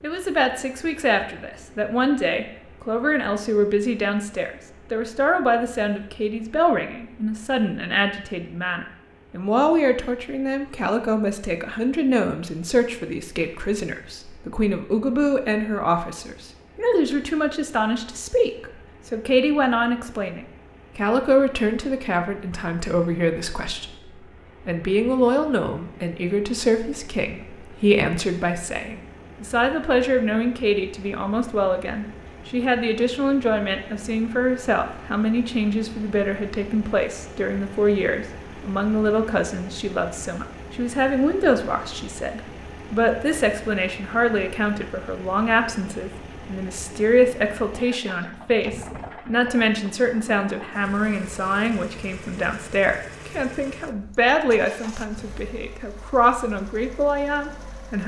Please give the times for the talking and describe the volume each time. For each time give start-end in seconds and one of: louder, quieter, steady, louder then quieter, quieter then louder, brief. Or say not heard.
0.0-58.0 steady.